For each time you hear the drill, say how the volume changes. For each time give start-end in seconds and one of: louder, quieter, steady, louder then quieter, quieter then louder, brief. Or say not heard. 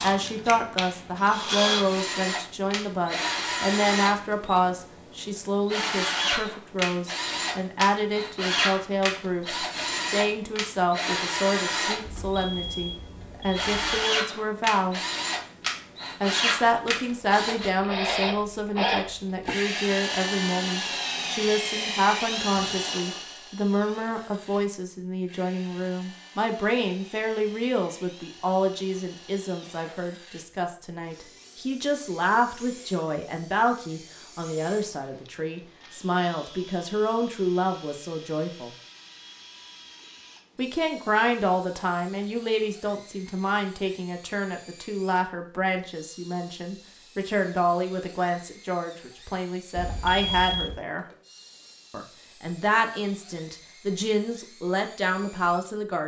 0.0-55.8 quieter.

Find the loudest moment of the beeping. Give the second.
50 s.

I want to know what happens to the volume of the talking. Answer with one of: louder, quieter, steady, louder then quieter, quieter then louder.
steady.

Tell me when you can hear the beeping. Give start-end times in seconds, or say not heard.
12.1-14.1, 49.8-50.9.